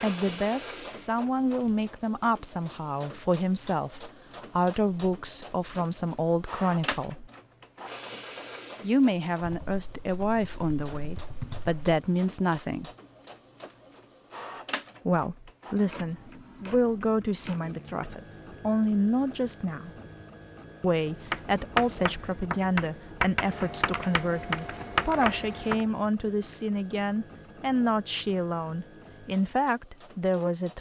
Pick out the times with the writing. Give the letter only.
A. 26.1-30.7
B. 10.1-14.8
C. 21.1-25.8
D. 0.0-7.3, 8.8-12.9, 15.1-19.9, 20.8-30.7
C.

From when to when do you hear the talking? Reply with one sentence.
You can hear the talking from 0.0 to 7.3 s, from 8.8 to 12.9 s, from 15.1 to 19.9 s and from 20.8 to 30.7 s.